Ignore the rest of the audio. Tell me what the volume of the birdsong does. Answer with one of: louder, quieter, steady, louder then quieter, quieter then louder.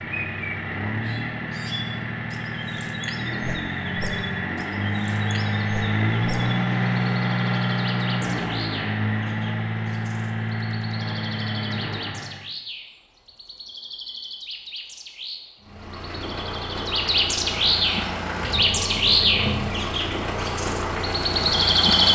louder.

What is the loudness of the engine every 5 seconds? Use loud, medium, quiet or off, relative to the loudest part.
medium, loud, medium, medium, loud.